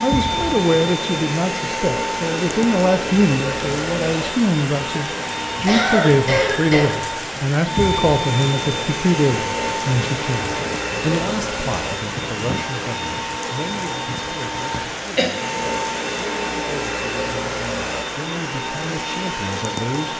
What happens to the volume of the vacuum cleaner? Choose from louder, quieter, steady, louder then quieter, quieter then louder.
steady.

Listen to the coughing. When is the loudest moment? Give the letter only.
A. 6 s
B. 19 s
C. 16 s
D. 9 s
A.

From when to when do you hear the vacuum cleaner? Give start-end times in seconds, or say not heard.
0.0-20.1.